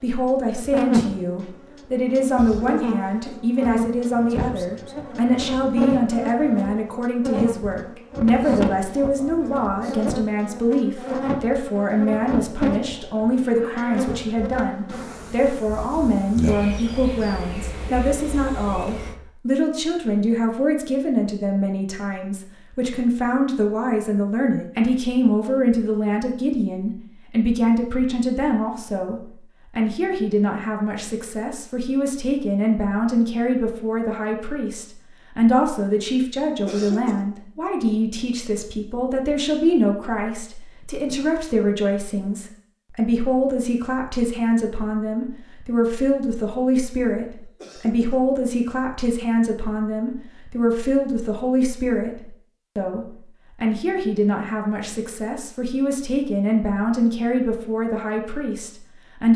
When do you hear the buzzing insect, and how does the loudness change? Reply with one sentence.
The buzzing insect can be heard from 0.5 to 19.1 s, getting quieter.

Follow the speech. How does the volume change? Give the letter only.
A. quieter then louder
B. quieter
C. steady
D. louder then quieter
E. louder
C.